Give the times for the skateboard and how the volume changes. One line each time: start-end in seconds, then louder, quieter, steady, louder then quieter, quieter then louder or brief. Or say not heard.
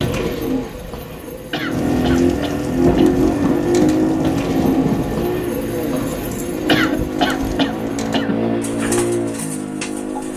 not heard.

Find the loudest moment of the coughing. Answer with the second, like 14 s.
7 s.